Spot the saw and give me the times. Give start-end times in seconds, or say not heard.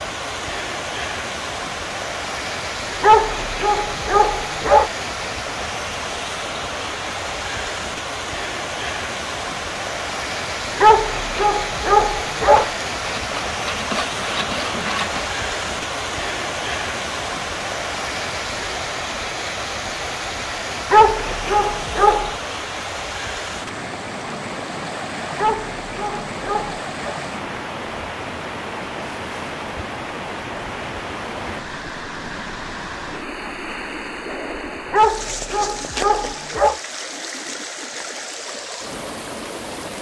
12.6-15.3.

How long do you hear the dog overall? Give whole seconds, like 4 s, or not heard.
9 s.